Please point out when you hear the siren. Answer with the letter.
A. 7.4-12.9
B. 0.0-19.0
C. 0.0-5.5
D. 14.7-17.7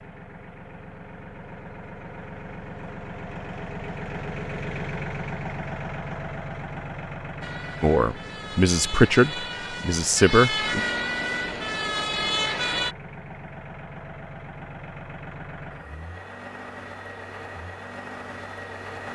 A.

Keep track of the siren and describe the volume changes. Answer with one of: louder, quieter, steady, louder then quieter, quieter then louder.
louder.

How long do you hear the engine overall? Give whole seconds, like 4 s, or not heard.
19 s.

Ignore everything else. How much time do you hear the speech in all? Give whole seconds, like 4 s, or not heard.
3 s.